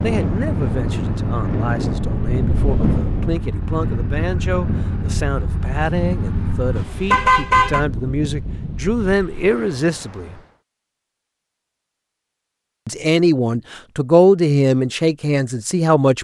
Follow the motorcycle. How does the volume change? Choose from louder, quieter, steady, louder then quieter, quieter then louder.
steady.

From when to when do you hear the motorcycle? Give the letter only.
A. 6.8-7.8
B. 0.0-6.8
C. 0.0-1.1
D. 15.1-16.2
B.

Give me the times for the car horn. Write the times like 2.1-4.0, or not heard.
6.8-7.8.